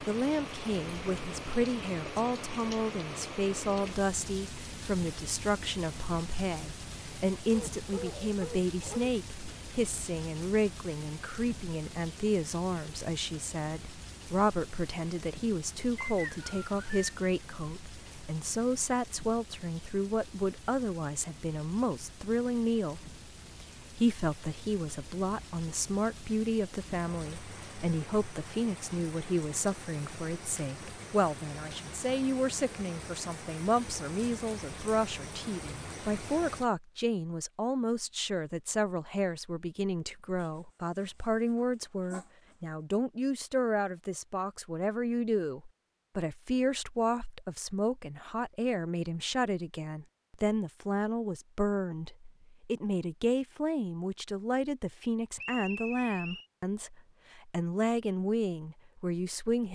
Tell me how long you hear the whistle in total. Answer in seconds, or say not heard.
2 s.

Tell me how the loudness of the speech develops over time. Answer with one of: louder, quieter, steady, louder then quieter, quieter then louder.
steady.